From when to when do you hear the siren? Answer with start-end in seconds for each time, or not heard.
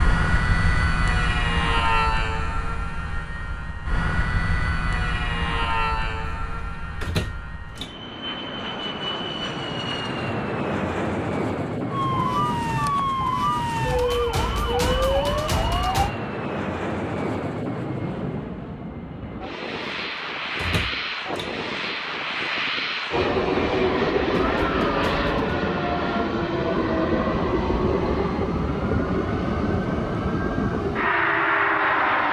11.9-16.1, 24.4-32.2.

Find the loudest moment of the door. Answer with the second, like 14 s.
7 s.